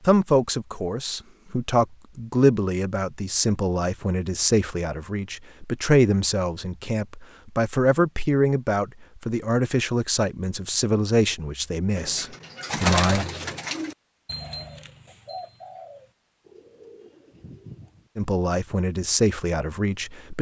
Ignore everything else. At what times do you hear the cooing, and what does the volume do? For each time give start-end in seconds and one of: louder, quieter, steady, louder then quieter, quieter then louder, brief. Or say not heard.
11.9-18.1 quieter.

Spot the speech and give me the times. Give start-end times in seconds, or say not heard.
0.1-13.2, 18.1-20.3.